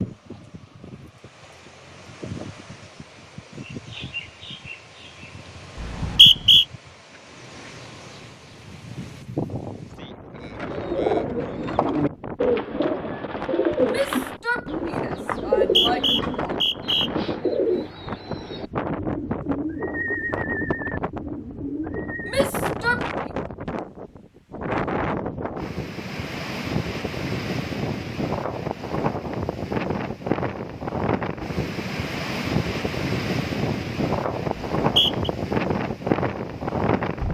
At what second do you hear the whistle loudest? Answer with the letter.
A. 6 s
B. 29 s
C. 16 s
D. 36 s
A.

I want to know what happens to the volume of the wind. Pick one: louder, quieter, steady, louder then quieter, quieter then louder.
louder.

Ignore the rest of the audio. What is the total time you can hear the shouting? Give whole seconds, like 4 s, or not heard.
3 s.